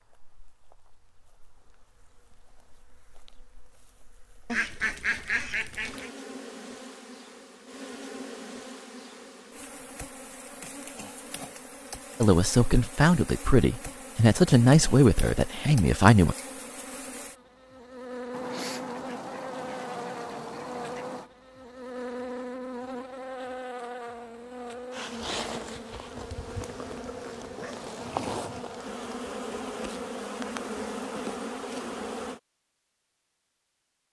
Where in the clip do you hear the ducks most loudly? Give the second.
5 s.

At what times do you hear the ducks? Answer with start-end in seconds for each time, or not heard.
4.5-6.1, 18.3-21.3.